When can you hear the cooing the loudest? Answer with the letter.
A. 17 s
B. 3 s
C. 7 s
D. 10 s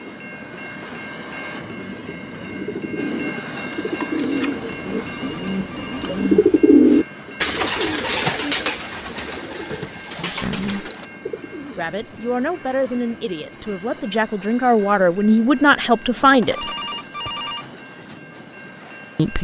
C.